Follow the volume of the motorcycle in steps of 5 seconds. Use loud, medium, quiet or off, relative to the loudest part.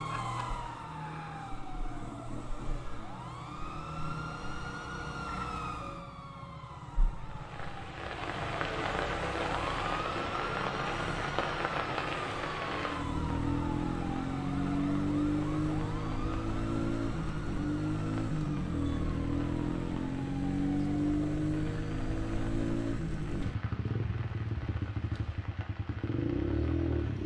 quiet, quiet, loud, loud, loud, loud.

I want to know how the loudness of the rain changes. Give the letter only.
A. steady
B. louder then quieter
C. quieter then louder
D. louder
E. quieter
E.